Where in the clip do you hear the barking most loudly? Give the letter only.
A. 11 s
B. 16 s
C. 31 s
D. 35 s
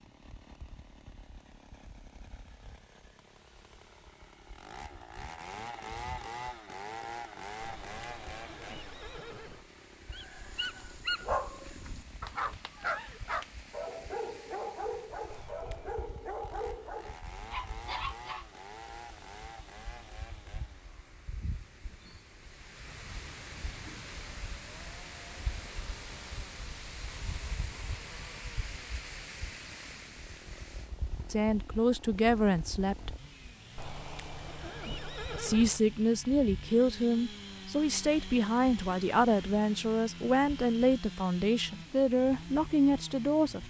A.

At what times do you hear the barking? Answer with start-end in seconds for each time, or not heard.
10.1-18.6.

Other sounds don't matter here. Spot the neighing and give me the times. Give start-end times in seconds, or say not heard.
7.6-9.7, 15.3-16.1, 33.8-35.8.